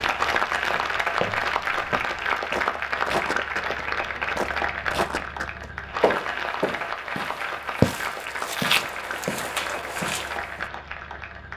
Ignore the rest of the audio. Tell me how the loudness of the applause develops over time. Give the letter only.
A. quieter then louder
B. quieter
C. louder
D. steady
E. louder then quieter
B.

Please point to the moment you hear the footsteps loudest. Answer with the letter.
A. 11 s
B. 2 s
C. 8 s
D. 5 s
C.